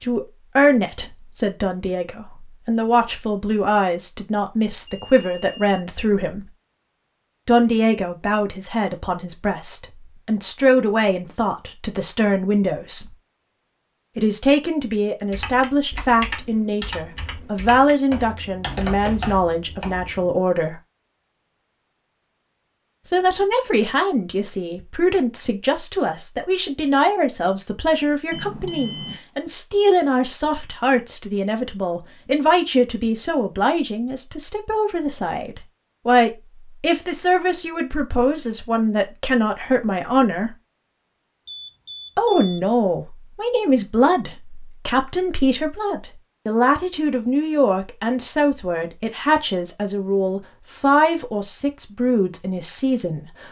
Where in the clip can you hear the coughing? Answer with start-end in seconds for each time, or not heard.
not heard.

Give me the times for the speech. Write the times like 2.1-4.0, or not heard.
0.0-6.5, 7.5-13.2, 14.2-20.8, 23.1-40.5, 42.1-53.4.